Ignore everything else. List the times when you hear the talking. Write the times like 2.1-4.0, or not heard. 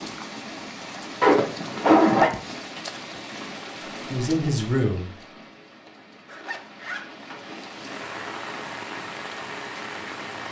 4.0-5.1.